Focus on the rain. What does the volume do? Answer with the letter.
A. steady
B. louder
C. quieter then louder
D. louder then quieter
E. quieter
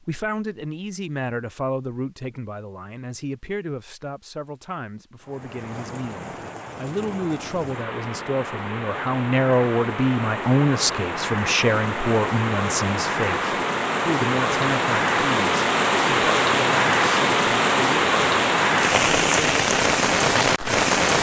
B.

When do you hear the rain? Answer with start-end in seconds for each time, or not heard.
5.2-21.1.